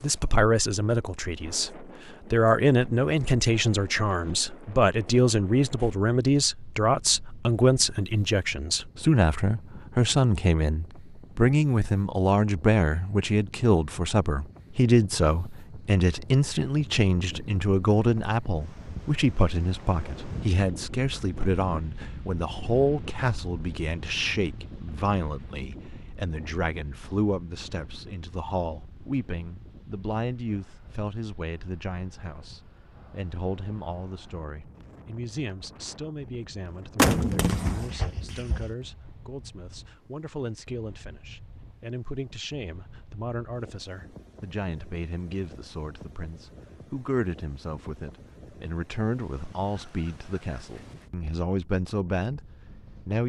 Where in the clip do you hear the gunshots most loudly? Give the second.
37 s.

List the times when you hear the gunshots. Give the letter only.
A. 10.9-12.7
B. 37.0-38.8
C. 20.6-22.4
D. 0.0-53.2
B.